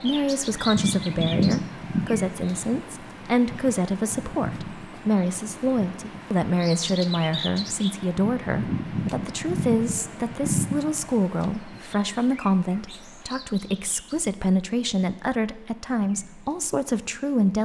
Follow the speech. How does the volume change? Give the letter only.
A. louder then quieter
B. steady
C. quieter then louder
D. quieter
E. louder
B.